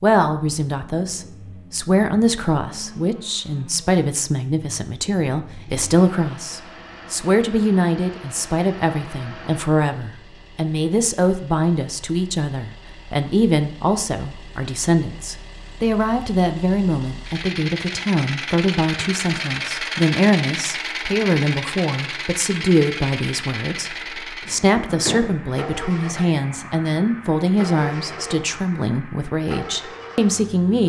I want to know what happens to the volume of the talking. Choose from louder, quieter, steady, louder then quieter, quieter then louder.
steady.